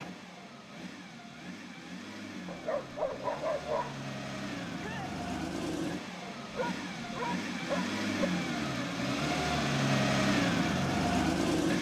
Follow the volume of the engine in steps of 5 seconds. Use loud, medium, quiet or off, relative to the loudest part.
quiet, medium, loud.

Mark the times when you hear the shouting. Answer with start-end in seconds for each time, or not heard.
4.8-5.2.